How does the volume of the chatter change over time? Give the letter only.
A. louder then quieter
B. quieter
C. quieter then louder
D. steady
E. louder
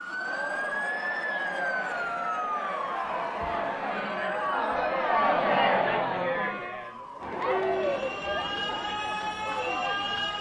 A.